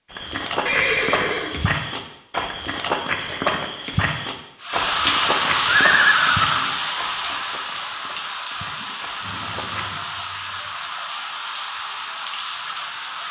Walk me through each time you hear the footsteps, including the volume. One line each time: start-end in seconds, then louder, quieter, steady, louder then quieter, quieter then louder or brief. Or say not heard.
0.1-10.0 quieter.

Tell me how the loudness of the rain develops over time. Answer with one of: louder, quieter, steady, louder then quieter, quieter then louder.
quieter.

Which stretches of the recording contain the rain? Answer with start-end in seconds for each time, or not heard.
4.6-13.2.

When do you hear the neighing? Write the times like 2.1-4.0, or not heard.
0.7-1.6, 5.7-6.8, 9.2-10.7.